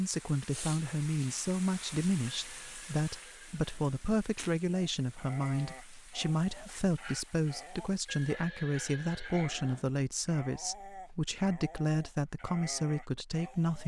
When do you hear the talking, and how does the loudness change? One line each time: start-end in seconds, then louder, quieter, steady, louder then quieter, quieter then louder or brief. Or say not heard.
0.0-13.8 steady.